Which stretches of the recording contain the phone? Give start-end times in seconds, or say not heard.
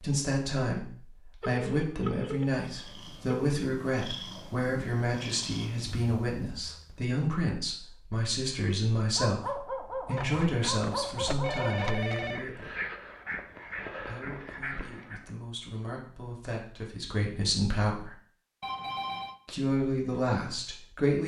1.4-3.5, 10.2-12.4, 18.6-19.4.